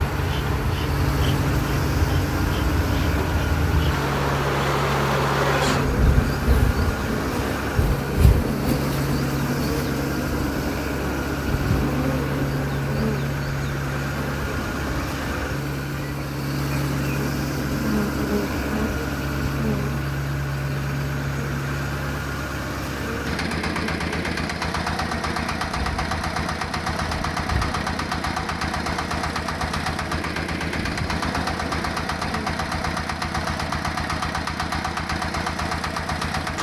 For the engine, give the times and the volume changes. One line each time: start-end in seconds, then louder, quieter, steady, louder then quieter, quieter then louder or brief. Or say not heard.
0.0-36.5 steady.